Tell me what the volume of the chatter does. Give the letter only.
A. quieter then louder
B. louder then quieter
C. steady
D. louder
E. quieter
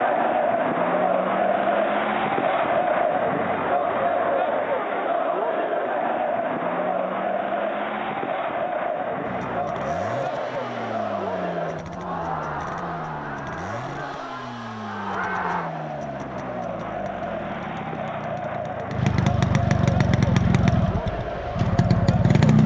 E.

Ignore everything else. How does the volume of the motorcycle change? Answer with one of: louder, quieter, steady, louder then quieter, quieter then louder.
louder.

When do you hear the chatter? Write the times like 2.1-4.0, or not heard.
0.0-22.6.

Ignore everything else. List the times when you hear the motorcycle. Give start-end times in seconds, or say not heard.
9.2-22.6.